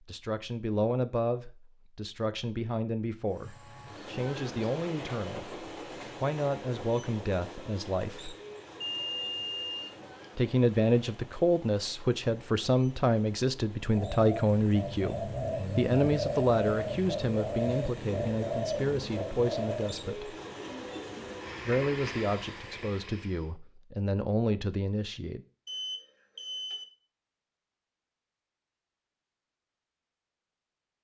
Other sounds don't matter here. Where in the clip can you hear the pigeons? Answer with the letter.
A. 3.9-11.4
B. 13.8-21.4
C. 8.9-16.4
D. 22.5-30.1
B.